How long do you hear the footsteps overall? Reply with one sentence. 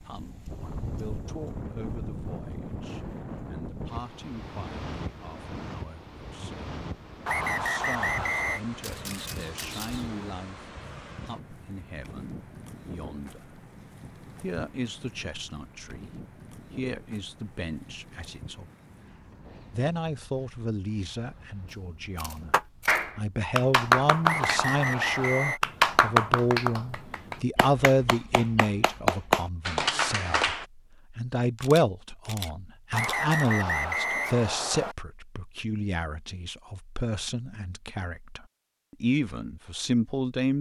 The footsteps can't be heard in this clip.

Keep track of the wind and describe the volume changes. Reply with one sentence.
The volume of the wind goes down.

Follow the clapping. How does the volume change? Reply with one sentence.
The loudness of the clapping goes down, then up.